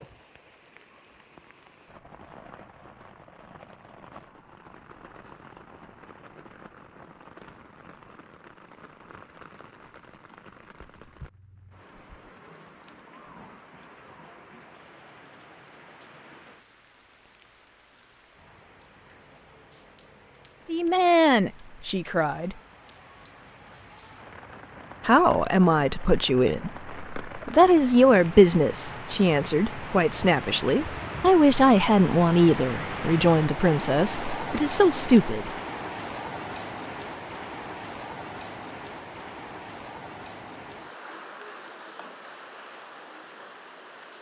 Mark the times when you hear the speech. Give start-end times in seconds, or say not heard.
20.6-22.6, 25.1-35.5.